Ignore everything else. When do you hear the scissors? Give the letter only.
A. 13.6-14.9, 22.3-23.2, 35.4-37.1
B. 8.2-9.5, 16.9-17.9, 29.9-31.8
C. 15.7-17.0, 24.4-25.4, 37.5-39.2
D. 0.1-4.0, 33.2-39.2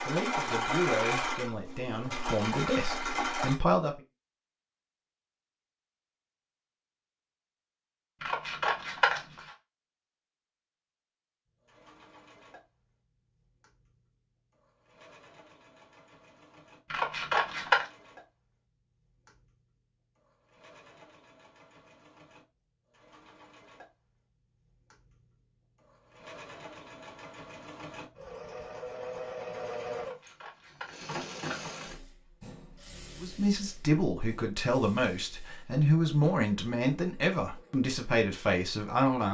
B.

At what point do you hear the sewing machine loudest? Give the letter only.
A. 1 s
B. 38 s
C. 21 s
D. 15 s
A.